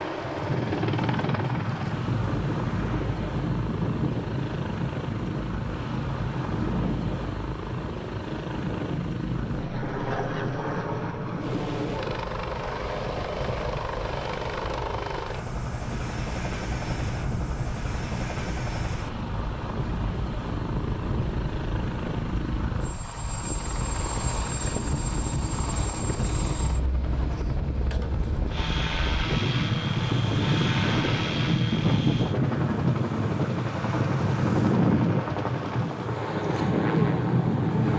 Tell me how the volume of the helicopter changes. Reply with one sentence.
The volume of the helicopter stays about the same.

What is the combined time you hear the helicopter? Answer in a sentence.
You can hear the helicopter for 38 seconds altogether.